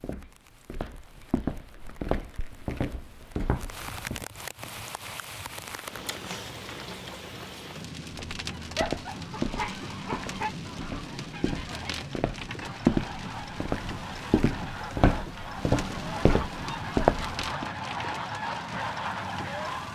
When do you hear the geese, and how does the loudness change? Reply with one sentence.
The geese can be heard from 8.4 to 19.9 s, getting louder.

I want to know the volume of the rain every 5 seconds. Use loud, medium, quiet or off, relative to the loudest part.
medium, loud, loud, loud.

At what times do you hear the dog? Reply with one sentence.
The dog can be heard from 8.8 to 10.5 s.